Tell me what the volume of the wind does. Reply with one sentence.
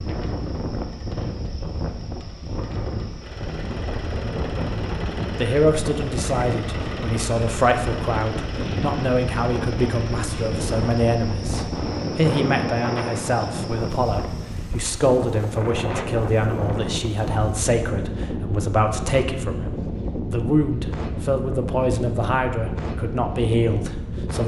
The volume of the wind stays about the same.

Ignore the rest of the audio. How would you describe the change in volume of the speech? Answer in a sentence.
The loudness of the speech stays about the same.